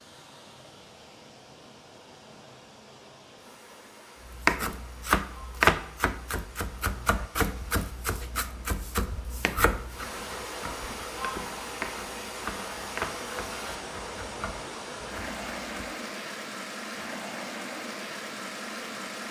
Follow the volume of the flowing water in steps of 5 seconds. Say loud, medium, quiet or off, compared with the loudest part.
quiet, quiet, loud, loud.